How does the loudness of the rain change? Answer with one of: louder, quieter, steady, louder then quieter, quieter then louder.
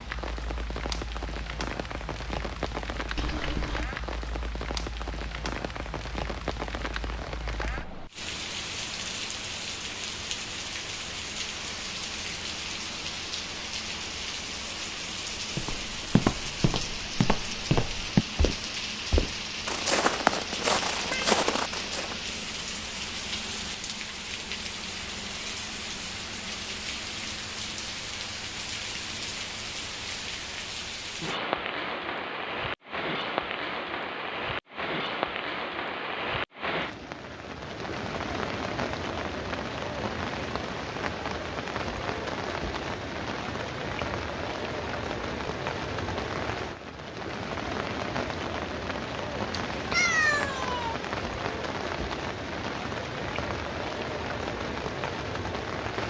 steady.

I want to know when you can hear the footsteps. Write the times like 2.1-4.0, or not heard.
15.6-22.1.